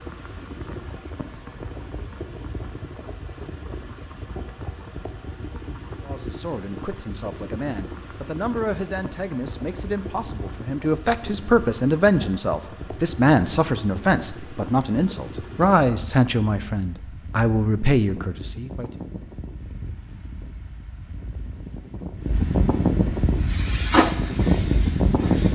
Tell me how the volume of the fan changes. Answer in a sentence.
The volume of the fan goes up.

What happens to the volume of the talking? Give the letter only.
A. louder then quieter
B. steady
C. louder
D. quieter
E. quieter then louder
C.